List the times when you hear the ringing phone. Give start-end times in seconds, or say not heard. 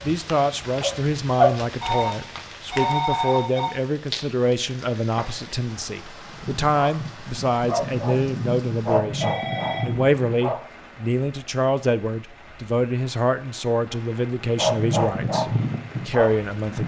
1.8-3.7, 9.2-10.1.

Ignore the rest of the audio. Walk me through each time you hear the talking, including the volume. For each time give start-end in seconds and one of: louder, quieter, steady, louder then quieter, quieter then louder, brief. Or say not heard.
0.0-16.8 steady.